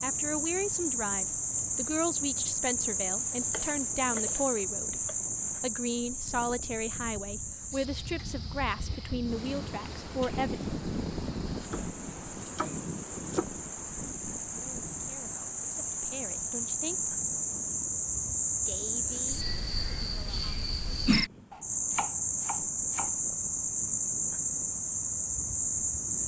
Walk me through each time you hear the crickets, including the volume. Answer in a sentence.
You can hear the crickets from 0.0 to 26.2 s, getting quieter then louder.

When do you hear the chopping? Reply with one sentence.
You can hear the chopping from 3.4 to 5.2 s, from 11.5 to 13.4 s and from 21.5 to 23.1 s.